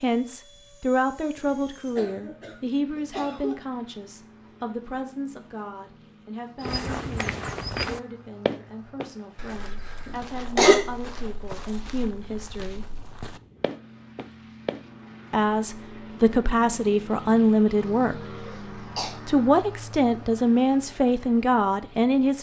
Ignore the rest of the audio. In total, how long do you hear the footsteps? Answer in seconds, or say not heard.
8 s.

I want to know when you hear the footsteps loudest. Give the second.
8 s.